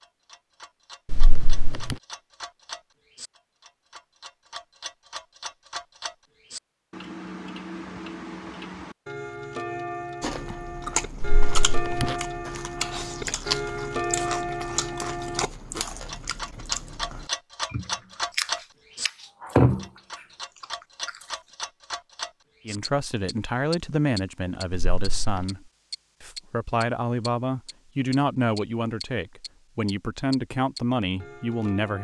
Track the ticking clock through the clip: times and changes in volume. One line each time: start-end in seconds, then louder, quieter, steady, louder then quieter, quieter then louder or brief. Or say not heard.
0.0-32.0 louder then quieter.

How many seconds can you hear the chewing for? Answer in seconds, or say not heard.
10 s.